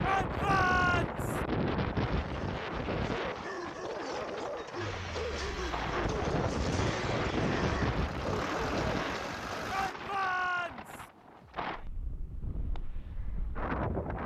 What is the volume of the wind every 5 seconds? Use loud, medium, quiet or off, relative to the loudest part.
loud, loud, medium.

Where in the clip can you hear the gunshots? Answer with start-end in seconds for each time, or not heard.
not heard.